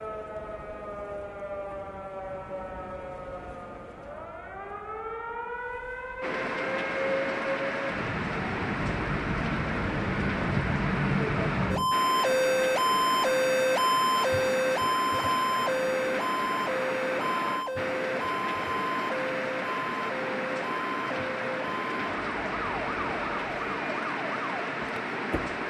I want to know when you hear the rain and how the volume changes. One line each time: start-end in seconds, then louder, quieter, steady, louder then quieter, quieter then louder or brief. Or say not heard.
6.2-25.6 steady.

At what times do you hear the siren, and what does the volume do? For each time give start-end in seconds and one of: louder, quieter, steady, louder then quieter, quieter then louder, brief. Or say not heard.
0.0-25.6 louder then quieter.